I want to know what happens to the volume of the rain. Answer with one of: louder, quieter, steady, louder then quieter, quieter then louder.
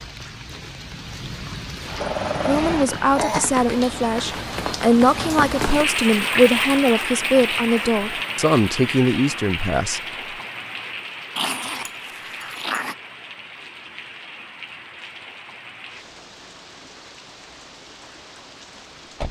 louder then quieter.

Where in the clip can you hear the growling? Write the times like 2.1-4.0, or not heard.
2.0-3.5, 11.3-12.9.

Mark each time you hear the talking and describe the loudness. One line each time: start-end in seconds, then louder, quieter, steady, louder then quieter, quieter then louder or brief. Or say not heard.
2.5-10.0 steady.